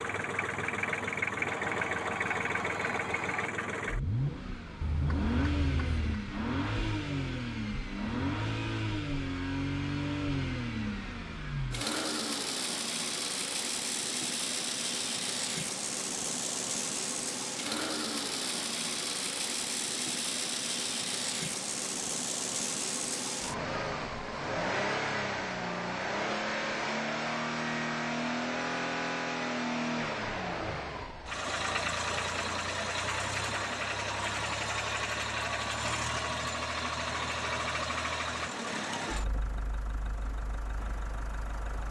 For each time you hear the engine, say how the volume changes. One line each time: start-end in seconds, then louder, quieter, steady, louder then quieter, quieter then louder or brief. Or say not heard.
0.0-41.8 steady.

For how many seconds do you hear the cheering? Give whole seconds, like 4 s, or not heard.
2 s.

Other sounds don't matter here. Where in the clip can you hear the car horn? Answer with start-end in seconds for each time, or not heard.
4.8-6.2.